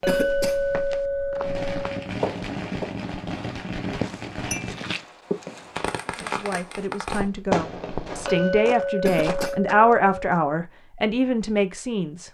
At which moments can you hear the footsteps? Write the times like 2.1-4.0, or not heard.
0.0-10.4.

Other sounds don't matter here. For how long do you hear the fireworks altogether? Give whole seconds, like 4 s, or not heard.
7 s.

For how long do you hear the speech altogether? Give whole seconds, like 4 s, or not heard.
6 s.